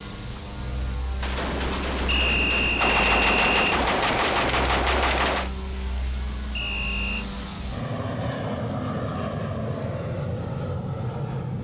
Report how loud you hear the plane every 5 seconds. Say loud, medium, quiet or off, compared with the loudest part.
medium, loud, loud.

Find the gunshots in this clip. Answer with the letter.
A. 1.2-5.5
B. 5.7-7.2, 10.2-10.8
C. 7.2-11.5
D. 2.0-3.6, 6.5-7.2
A.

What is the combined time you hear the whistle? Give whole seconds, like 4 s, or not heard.
2 s.